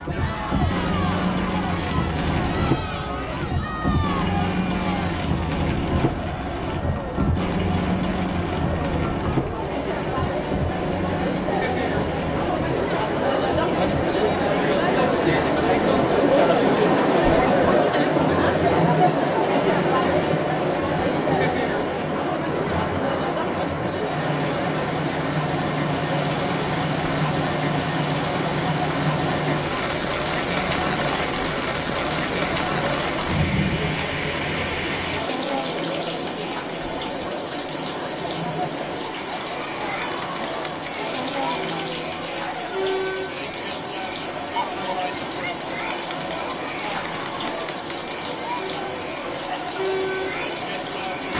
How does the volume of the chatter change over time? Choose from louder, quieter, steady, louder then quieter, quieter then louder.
louder then quieter.